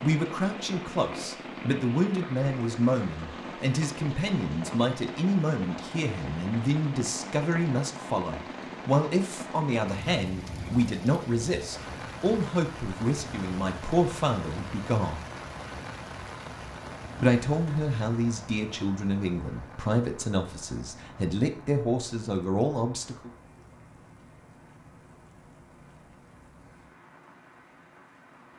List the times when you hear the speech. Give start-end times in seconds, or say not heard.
0.0-15.2, 17.2-23.3.